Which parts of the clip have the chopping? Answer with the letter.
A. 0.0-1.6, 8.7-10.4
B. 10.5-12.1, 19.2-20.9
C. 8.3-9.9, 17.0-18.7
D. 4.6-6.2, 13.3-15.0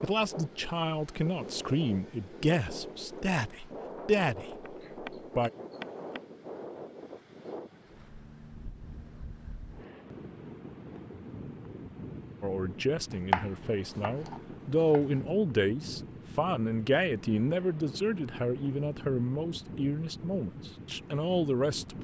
D.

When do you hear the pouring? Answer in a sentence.
The pouring can't be heard in this clip.